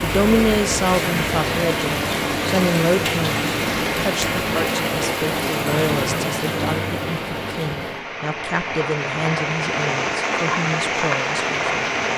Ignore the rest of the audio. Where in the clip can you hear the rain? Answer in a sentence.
You can hear the rain from 0.0 to 12.1 s.